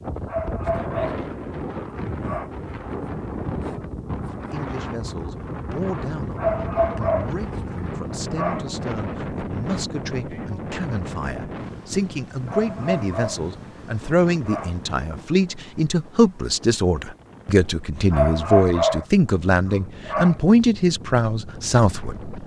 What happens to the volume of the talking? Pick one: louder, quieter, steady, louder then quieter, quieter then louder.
louder.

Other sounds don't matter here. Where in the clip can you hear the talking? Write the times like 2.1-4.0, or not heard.
4.5-22.4.